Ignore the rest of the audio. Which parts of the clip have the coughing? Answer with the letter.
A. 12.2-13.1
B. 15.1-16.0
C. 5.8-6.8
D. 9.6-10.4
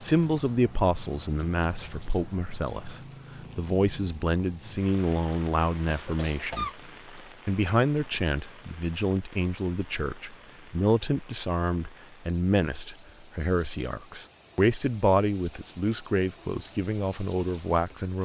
C.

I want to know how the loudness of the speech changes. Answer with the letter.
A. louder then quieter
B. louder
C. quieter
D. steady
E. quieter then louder
D.